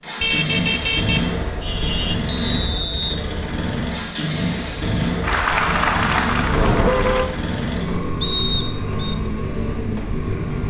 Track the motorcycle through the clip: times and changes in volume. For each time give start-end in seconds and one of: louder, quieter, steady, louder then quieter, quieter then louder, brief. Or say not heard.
0.0-10.6 steady.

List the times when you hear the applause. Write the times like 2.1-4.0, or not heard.
5.2-7.2.